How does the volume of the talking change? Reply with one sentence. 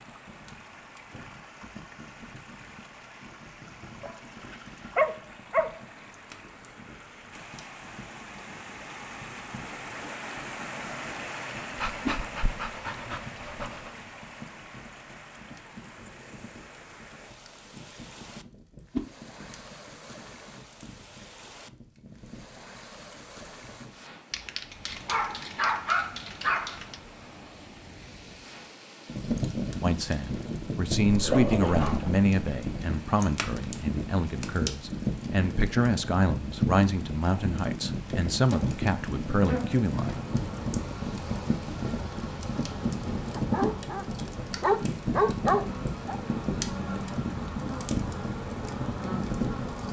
The loudness of the talking stays about the same.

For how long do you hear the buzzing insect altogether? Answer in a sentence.
The buzzing insect can be heard for 11 seconds in total.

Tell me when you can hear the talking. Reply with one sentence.
The talking can be heard from 29.8 to 40.2 s.